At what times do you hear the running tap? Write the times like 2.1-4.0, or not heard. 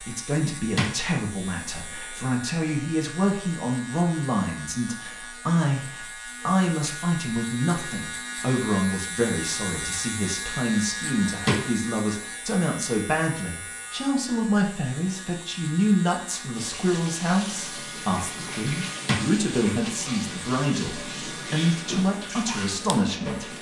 16.5-23.5.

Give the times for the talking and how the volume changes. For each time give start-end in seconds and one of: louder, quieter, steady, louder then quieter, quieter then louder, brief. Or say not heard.
0.0-23.5 steady.